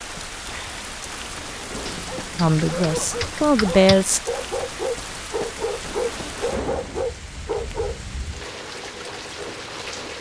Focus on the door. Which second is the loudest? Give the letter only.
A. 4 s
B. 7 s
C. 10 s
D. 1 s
B.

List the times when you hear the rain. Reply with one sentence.
You can hear the rain from 0.0 to 10.1 s.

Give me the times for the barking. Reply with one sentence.
The barking can be heard from 2.0 to 8.0 s.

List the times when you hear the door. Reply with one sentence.
The door can be heard from 1.1 to 2.0 s and from 5.8 to 7.0 s.